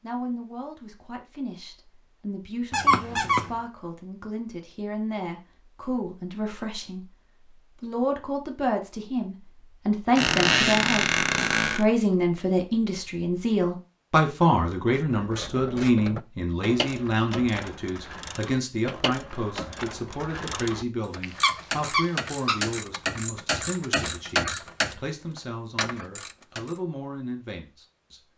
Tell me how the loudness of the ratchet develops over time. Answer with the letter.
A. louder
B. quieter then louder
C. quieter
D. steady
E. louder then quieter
A.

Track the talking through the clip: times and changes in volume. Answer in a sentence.
You can hear the talking from 0.0 to 7.1 s, getting louder; and from 7.8 to 28.2 s, getting quieter.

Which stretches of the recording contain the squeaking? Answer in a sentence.
You can hear the squeaking from 2.7 to 3.5 s, from 10.2 to 11.8 s and from 21.2 to 22.6 s.